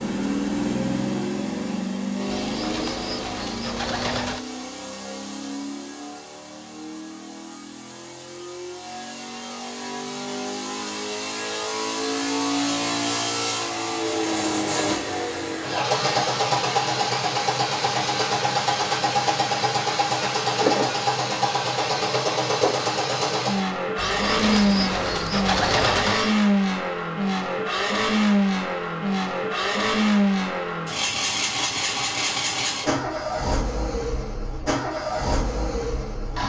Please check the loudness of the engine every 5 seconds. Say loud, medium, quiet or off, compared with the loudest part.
medium, quiet, loud, loud, loud, loud, loud, medium.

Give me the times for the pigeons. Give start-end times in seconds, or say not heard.
2.2-4.4, 23.9-26.4.